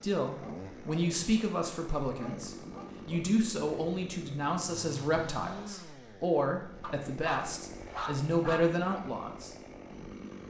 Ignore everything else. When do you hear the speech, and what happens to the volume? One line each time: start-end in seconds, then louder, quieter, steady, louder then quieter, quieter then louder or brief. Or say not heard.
0.0-9.6 steady.